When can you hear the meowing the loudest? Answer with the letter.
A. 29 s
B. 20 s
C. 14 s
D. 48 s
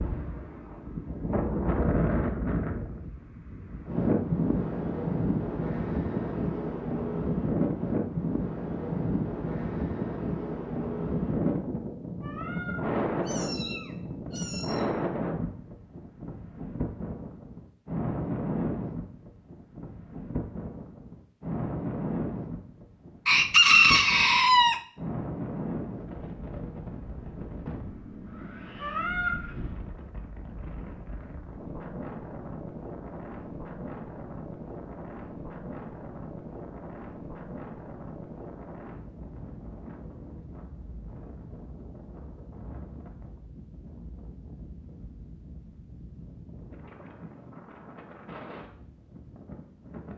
A.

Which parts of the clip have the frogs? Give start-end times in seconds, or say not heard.
not heard.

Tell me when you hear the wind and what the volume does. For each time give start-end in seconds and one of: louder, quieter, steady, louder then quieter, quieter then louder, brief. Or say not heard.
0.0-50.1 quieter.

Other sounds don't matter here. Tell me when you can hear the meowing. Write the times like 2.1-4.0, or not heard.
12.2-14.8, 28.8-29.4.